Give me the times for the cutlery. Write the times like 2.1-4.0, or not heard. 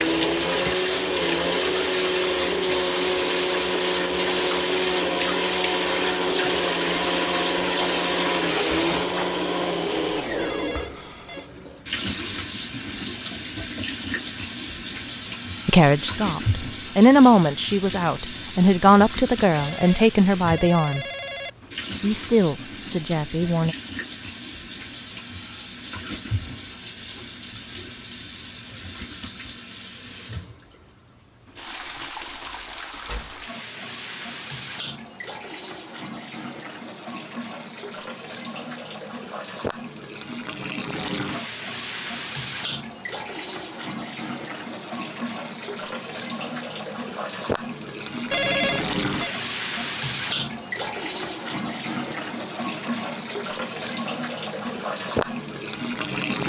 not heard.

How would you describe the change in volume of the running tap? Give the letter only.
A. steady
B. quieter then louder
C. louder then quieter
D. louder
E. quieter
B.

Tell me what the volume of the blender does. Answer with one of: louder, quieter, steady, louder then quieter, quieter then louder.
steady.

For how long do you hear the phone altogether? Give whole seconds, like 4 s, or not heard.
4 s.